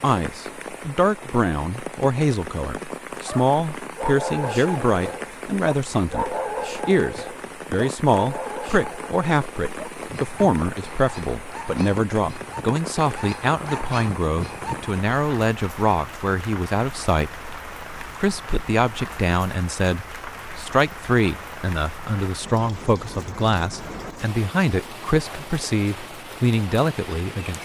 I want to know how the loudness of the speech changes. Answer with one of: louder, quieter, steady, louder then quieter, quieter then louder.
steady.